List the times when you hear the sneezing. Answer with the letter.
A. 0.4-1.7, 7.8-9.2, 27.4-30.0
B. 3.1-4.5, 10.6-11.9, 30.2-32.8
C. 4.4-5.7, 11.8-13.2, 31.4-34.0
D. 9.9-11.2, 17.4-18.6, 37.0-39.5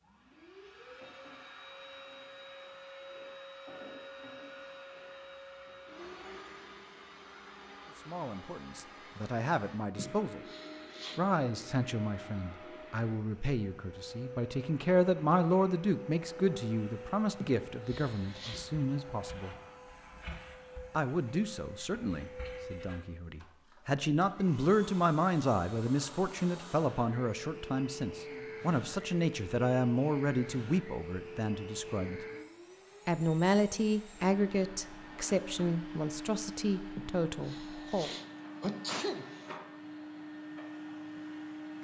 D.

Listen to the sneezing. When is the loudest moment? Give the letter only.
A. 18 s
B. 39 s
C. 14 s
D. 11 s
B.